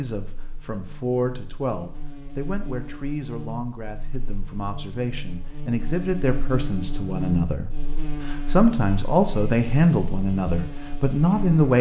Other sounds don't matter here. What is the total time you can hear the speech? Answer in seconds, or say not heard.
12 s.